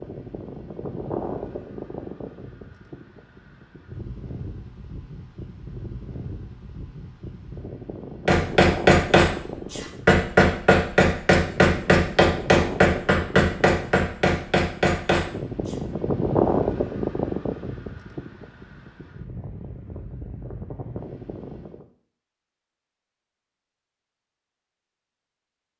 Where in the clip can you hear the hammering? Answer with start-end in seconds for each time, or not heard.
8.2-15.8.